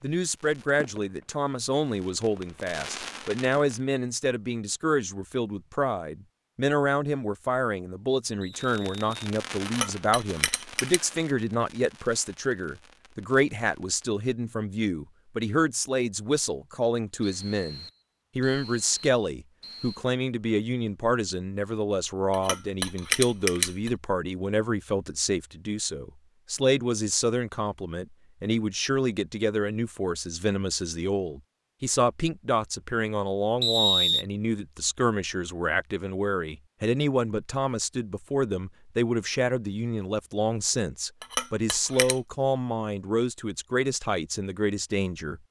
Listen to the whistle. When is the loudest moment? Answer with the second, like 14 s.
34 s.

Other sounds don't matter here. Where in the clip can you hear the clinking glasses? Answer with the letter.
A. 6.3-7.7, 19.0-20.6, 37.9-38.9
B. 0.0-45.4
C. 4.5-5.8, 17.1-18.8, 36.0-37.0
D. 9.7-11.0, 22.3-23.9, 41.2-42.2
D.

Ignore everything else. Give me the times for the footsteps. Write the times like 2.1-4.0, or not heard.
not heard.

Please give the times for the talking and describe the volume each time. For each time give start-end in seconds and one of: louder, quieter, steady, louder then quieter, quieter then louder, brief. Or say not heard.
0.0-45.4 steady.